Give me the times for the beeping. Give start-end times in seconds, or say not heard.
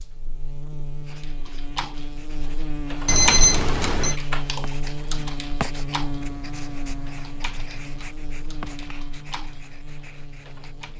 3.0-4.2.